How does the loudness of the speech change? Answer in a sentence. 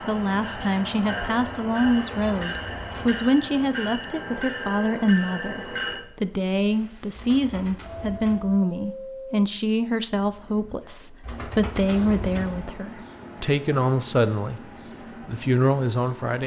The volume of the speech stays about the same.